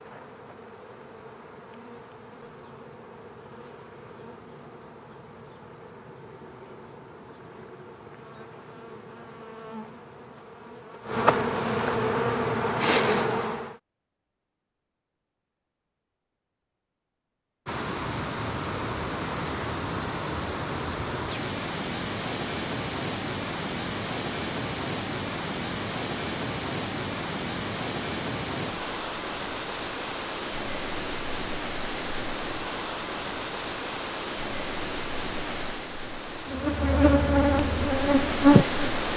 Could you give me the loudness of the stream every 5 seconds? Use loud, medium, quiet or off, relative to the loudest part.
off, off, off, loud, loud, loud, loud, loud.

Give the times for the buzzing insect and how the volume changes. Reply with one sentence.
You can hear the buzzing insect from 0.0 to 13.8 s, getting louder; and briefly from 36.5 to 38.9 s.